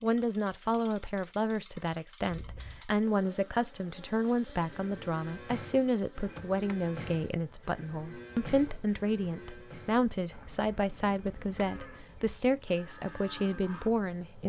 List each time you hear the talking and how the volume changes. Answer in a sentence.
You can hear the talking from 0.0 to 14.4 s, at a steady volume.